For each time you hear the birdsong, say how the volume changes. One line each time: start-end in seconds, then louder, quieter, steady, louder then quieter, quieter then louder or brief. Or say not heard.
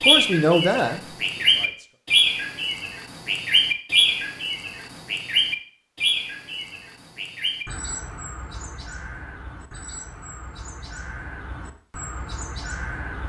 0.0-13.2 quieter.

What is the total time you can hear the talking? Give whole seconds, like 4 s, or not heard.
2 s.